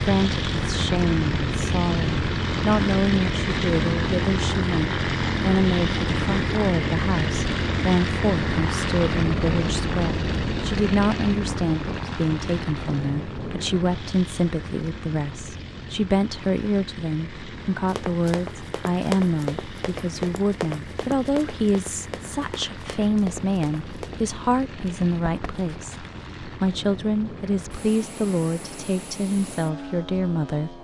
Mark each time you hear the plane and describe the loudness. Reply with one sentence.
You can hear the plane from 0.0 to 30.7 s, getting quieter.